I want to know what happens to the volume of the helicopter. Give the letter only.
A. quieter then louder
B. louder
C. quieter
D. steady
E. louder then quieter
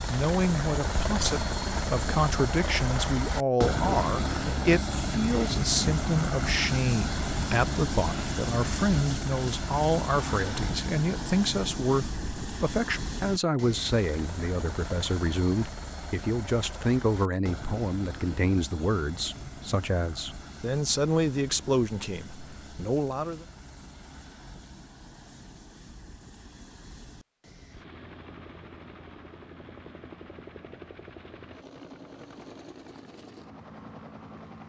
C.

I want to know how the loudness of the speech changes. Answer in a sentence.
The loudness of the speech stays about the same.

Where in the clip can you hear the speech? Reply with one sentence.
You can hear the speech from 0.1 to 23.4 s.